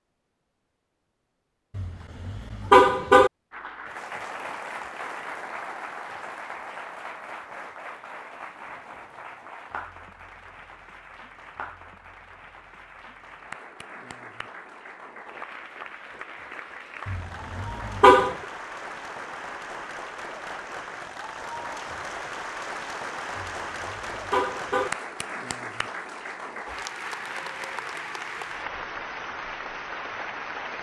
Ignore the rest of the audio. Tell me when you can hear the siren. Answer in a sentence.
The siren can't be heard in this clip.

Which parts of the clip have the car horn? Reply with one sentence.
The car horn can be heard from 1.8 to 3.3 s, from 17.1 to 18.4 s and from 23.4 to 24.9 s.